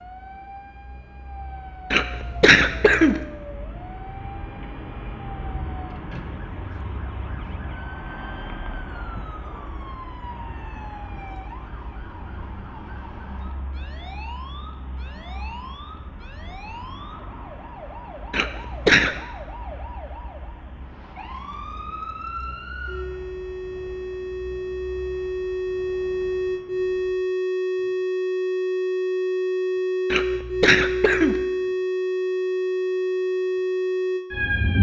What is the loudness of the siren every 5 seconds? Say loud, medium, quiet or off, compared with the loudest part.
quiet, quiet, quiet, quiet, medium, loud, loud.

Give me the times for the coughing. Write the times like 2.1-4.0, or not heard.
1.9-3.2, 18.3-19.2, 30.1-31.4.